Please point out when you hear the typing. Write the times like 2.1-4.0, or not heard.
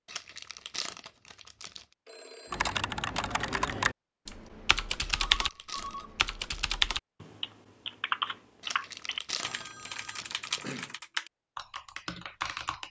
2.5-12.8.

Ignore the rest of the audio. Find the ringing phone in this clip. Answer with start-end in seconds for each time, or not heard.
2.0-2.7, 5.3-6.2, 9.4-10.9.